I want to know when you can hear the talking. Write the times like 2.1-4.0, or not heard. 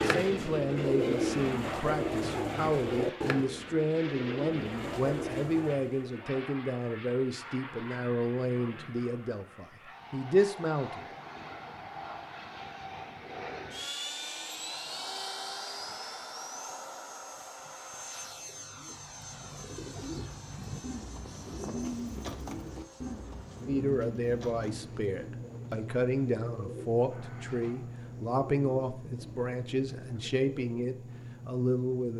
0.0-11.1, 23.6-32.1.